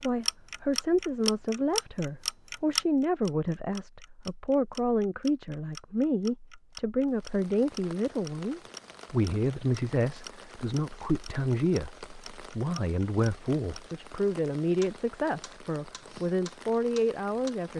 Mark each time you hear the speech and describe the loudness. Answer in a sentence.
You can hear the speech from 0.0 to 17.7 s, at a steady volume.